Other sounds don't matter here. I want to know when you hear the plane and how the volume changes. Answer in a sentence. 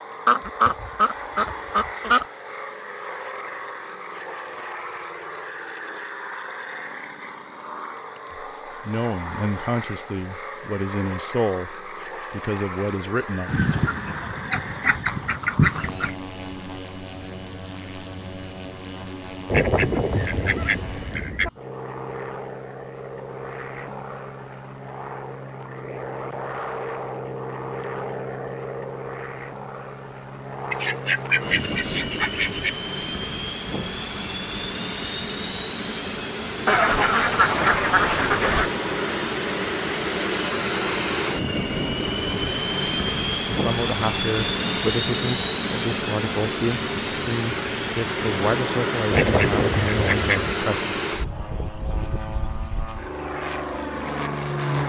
You can hear the plane from 0.0 to 54.8 s, getting louder.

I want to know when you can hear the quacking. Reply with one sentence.
The quacking can be heard from 0.2 to 2.2 s, from 13.4 to 16.1 s, from 19.5 to 21.5 s, from 30.7 to 32.7 s, from 36.6 to 38.7 s and from 49.1 to 50.5 s.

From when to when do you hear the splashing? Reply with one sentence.
The splashing can't be heard in this clip.